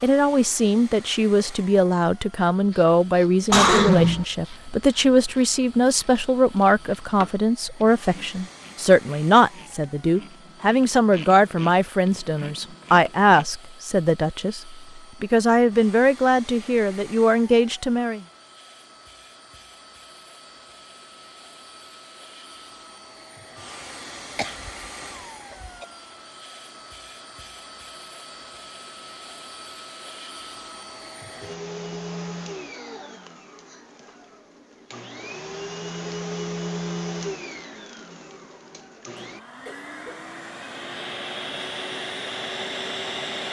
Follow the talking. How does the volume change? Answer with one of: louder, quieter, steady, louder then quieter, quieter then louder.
steady.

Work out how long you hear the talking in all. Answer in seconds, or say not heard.
18 s.